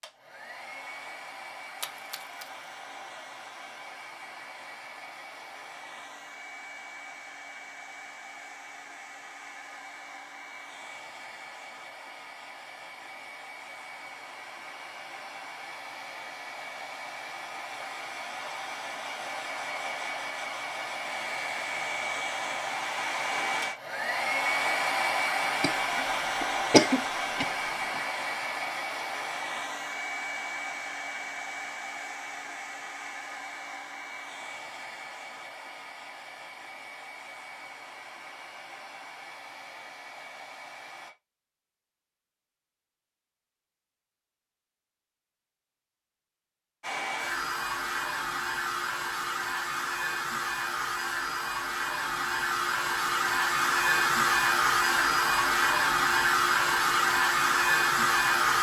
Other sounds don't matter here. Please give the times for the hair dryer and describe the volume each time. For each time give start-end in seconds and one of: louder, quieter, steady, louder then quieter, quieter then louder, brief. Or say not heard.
0.0-41.1 louder then quieter
46.8-58.5 louder.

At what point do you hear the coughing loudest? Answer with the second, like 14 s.
27 s.